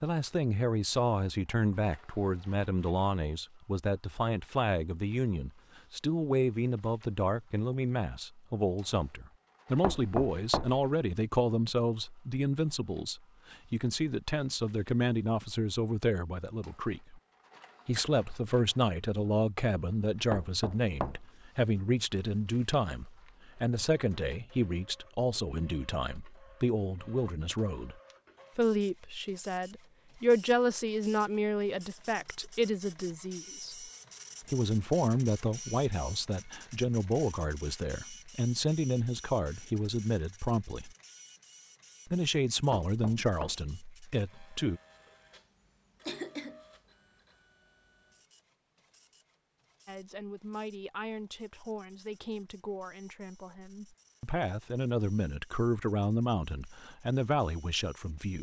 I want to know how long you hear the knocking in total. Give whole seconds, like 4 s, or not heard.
3 s.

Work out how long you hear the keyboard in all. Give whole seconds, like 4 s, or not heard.
not heard.